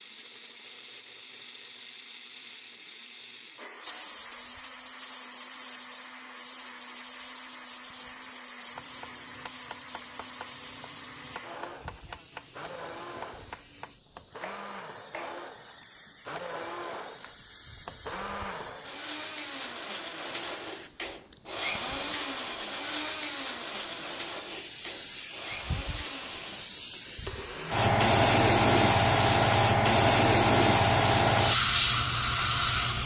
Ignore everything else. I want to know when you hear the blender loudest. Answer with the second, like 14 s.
22 s.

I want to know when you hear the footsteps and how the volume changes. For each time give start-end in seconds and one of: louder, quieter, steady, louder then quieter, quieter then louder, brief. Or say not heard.
not heard.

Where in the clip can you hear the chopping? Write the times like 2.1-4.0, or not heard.
8.7-15.4.